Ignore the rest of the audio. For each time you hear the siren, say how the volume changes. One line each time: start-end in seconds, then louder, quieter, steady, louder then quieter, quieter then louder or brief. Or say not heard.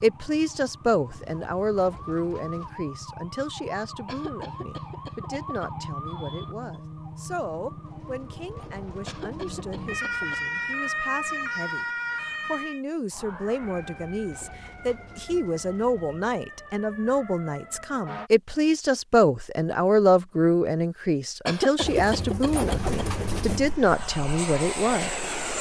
0.0-18.3 louder then quieter.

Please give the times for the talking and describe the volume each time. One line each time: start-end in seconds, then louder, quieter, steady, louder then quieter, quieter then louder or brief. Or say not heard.
0.0-25.5 quieter then louder.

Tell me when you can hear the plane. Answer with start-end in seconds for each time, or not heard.
22.8-25.5.